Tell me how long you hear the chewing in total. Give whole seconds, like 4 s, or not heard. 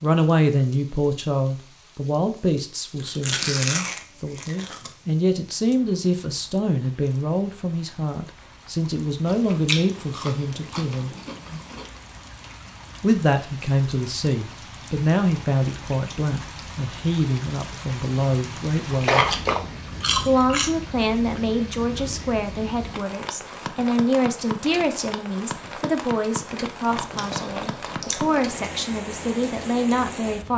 8 s.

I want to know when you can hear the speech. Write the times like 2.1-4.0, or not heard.
0.0-11.1, 13.0-19.4, 20.2-30.5.